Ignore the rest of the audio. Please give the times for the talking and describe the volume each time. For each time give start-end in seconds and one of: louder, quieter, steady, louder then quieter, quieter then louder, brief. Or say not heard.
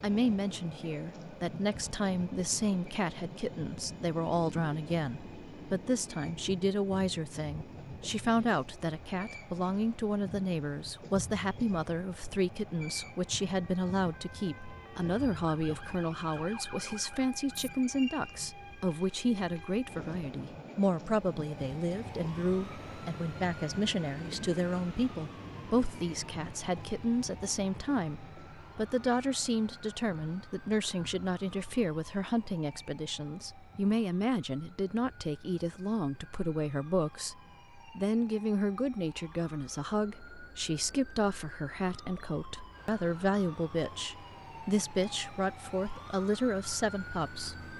0.0-47.7 steady.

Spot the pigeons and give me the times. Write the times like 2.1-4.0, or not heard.
not heard.